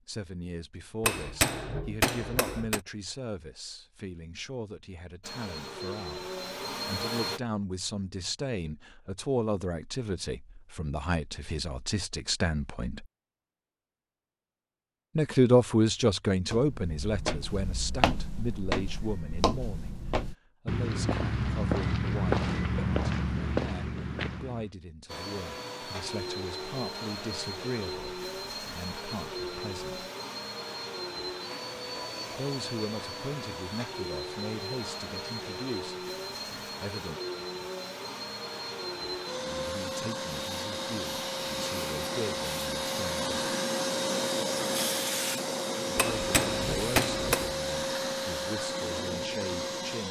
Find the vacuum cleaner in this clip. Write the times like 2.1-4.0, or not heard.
5.2-7.4, 25.1-50.0.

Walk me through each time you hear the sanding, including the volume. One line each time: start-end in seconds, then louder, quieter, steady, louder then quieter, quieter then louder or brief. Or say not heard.
not heard.